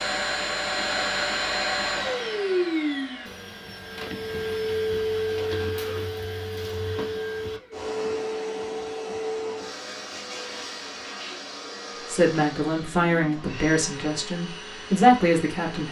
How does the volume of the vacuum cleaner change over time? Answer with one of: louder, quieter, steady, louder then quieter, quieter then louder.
quieter.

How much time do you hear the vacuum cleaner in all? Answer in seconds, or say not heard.
16 s.